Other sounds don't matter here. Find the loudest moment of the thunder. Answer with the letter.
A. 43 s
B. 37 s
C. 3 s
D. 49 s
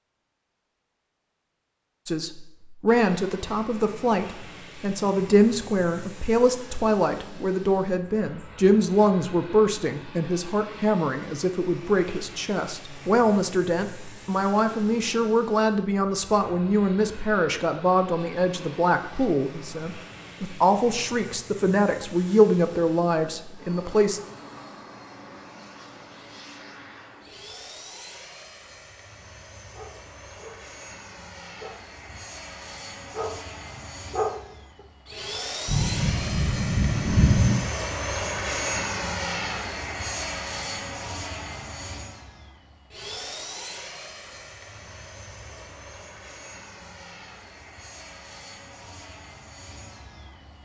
B.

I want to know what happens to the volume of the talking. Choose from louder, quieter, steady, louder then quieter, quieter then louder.
steady.